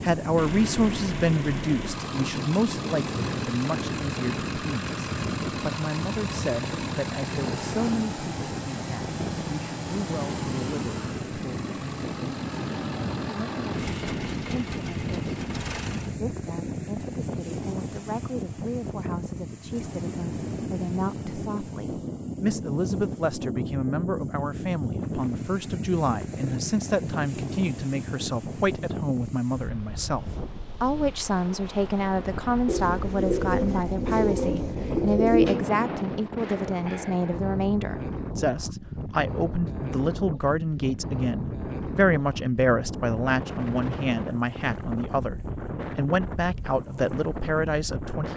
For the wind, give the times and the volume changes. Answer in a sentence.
You can hear the wind from 0.0 to 48.3 s, at a steady volume.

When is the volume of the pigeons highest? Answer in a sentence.
The loudest moment of the pigeons is at 35 seconds.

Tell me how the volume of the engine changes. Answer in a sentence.
The loudness of the engine stays about the same.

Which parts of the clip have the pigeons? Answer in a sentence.
You can hear the pigeons from 32.6 to 35.6 s.